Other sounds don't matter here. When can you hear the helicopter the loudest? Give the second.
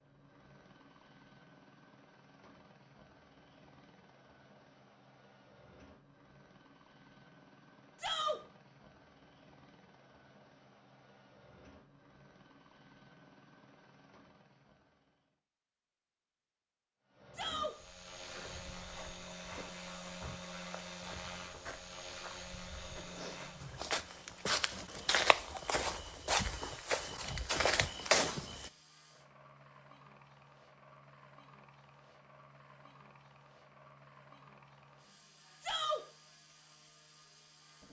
21 s.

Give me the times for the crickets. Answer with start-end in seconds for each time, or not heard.
not heard.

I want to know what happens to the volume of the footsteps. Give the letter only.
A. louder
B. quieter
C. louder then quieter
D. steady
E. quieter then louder
A.